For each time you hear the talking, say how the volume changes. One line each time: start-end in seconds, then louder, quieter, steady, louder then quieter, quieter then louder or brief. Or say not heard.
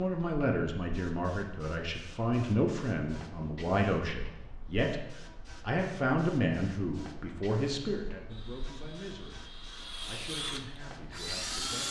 0.0-11.8 quieter.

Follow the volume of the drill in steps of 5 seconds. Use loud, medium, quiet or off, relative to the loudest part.
off, quiet, loud.